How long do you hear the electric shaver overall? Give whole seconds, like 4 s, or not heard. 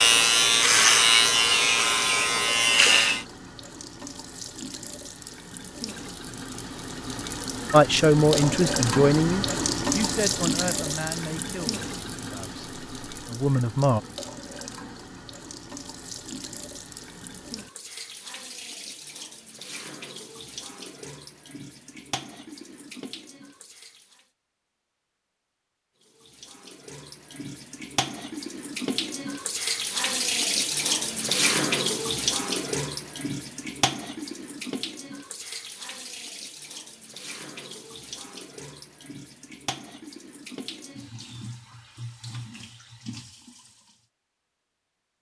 3 s.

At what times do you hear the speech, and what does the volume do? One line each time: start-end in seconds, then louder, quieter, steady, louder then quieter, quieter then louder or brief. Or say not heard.
7.7-14.0 quieter then louder.